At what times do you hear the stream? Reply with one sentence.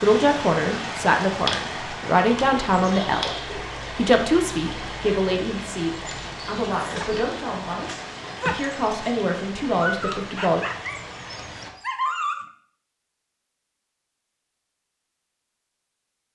You can hear the stream from 0.0 to 11.7 s.